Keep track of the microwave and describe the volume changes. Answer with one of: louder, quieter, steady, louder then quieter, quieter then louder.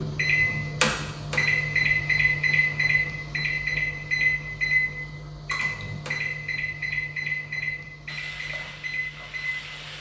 quieter.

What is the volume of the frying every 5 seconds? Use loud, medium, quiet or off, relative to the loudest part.
off, loud.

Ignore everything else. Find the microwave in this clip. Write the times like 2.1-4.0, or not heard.
0.0-9.9.